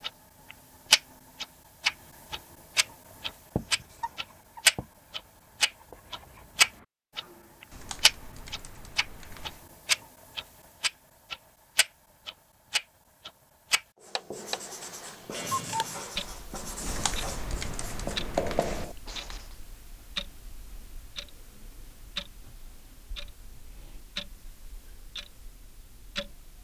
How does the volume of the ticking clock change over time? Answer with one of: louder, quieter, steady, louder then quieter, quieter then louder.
quieter.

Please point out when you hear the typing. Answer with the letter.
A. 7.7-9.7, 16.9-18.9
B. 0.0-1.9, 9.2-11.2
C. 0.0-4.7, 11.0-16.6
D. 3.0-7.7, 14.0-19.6
A.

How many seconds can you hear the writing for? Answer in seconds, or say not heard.
10 s.